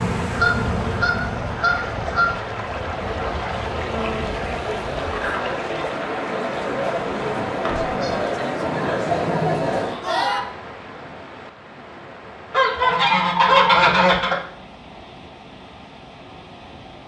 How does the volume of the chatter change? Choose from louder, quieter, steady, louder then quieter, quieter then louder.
louder.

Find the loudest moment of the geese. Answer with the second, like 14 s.
14 s.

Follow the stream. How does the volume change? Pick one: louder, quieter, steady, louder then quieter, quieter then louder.
quieter.